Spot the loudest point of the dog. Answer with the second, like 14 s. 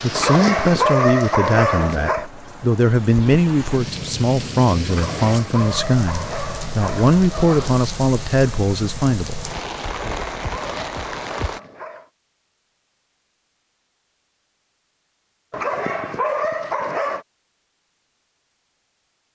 1 s.